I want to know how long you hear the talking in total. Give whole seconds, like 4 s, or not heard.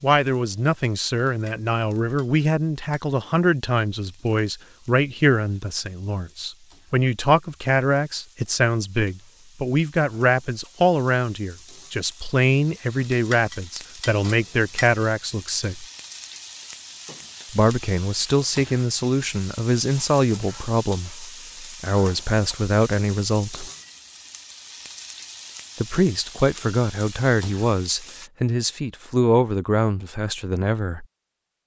27 s.